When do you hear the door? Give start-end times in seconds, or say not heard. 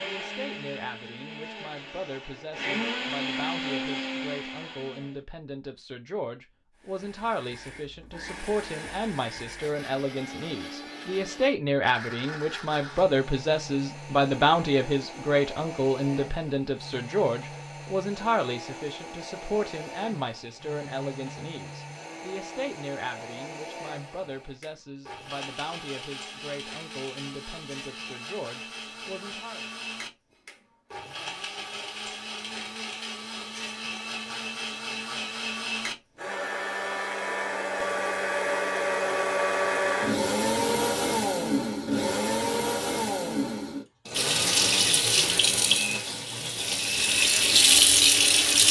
not heard.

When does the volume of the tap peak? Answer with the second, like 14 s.
48 s.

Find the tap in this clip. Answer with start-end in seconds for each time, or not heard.
44.1-48.6.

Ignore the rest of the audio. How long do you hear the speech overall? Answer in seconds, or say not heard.
30 s.